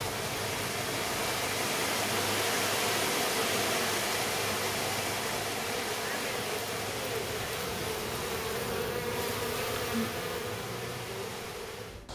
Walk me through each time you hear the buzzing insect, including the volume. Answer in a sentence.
You can hear the buzzing insect from 0.0 to 12.1 s, getting louder.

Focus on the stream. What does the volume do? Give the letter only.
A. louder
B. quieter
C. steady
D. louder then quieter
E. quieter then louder
B.